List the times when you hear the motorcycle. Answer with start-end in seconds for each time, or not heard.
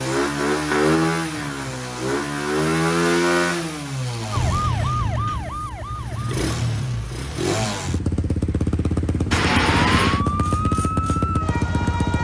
0.0-12.1.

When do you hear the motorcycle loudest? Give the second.
3 s.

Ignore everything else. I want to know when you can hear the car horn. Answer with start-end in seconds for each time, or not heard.
9.3-10.2.